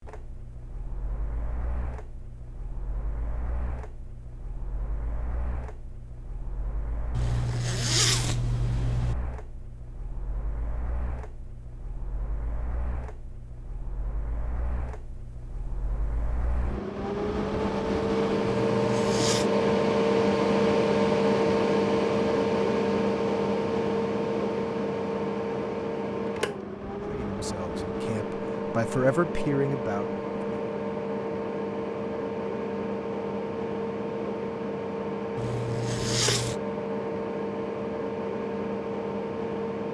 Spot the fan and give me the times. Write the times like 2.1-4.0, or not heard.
0.0-39.9.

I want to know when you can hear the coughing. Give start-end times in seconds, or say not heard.
not heard.